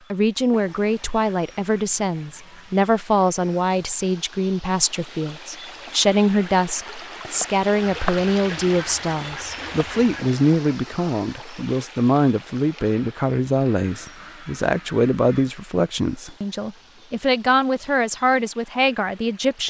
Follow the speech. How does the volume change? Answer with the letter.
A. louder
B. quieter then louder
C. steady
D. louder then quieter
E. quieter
C.